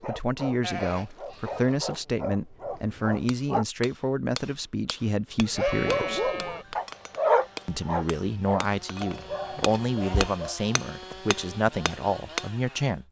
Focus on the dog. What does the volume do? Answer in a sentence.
The volume of the dog goes up, then down.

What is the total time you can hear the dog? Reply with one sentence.
The dog can be heard for 9 seconds in total.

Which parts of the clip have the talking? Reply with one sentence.
You can hear the talking from 0.0 to 6.3 s and from 7.7 to 13.0 s.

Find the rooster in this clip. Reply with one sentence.
The rooster can't be heard in this clip.